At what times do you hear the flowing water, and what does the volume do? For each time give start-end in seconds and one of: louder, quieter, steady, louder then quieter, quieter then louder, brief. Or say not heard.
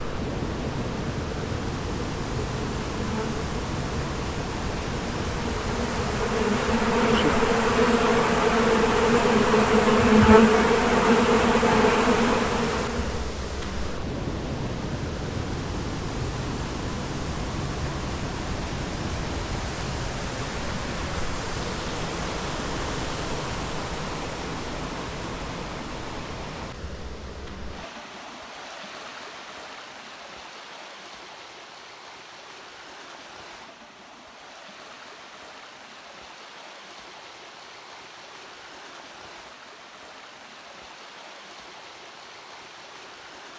0.0-43.5 quieter.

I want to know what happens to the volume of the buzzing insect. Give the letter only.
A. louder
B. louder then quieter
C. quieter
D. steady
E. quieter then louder
A.